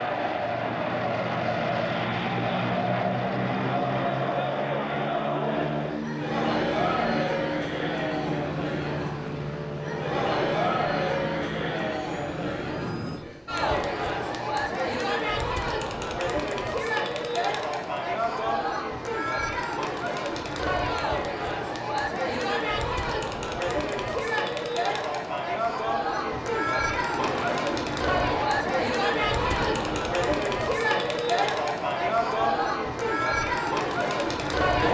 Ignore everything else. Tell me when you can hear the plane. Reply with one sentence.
The plane can be heard from 0.0 to 13.2 s and from 27.1 to 30.1 s.